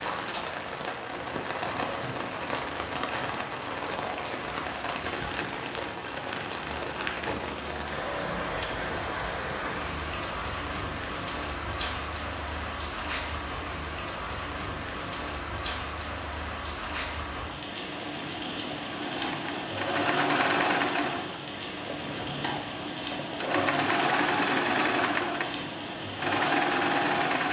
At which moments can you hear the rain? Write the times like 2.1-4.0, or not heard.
0.0-27.4.